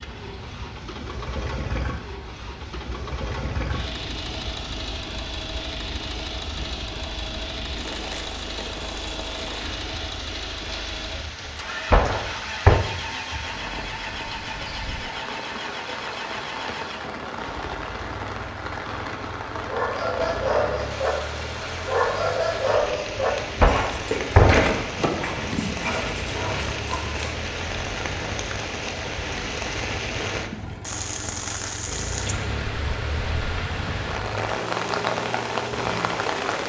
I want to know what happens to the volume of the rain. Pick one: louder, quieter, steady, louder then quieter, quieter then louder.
louder.